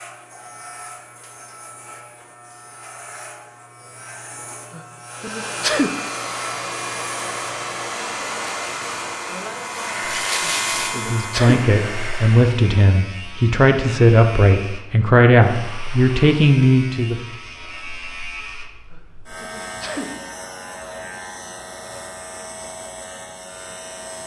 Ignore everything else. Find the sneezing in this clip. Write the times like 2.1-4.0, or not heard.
4.7-5.9, 10.4-11.6, 18.9-20.1.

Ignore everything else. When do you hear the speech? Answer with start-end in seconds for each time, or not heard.
10.9-17.2.